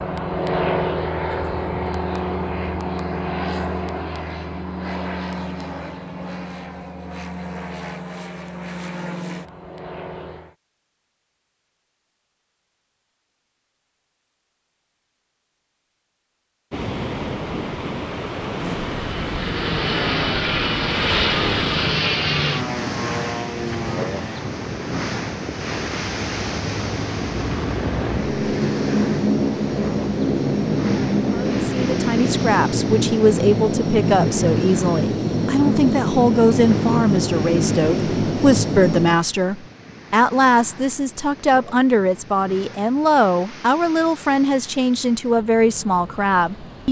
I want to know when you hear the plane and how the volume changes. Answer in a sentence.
You can hear the plane from 0.0 to 10.6 s, getting quieter; and from 18.6 to 39.2 s, getting quieter then louder.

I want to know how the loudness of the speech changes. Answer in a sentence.
The volume of the speech stays about the same.